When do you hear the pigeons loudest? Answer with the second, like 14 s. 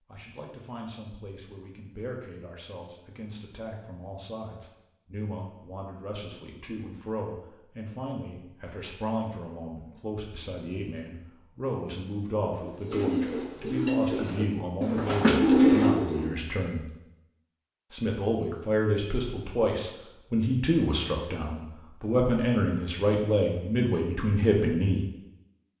16 s.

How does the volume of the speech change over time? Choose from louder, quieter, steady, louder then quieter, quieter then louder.
louder.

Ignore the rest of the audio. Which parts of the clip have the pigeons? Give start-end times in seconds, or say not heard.
12.5-16.4.